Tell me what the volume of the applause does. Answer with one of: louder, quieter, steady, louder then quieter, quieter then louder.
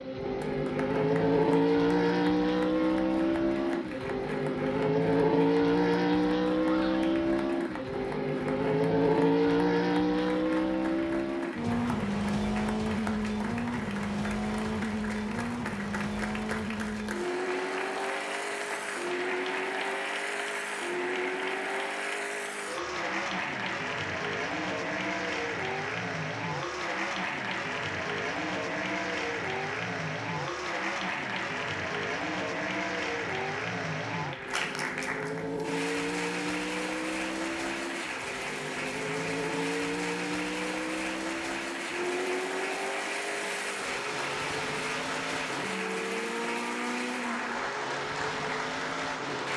louder.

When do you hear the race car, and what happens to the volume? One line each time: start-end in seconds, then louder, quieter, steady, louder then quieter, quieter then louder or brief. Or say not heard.
0.0-49.5 quieter.